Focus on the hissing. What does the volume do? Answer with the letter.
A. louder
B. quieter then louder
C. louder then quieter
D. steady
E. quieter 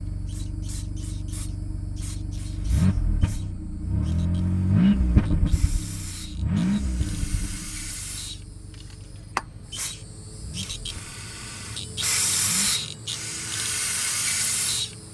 A.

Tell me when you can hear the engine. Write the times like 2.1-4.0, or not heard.
0.0-12.8.